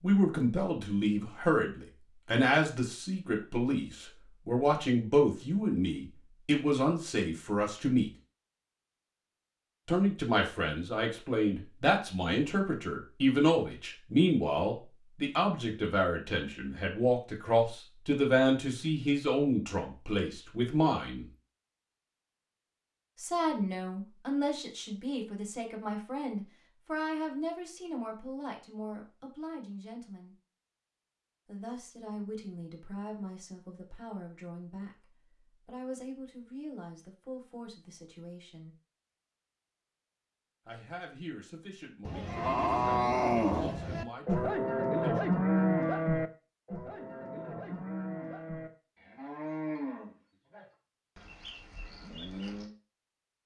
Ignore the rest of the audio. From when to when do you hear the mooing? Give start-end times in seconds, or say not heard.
42.0-52.7.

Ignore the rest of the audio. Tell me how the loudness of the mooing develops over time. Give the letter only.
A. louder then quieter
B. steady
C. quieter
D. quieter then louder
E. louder
C.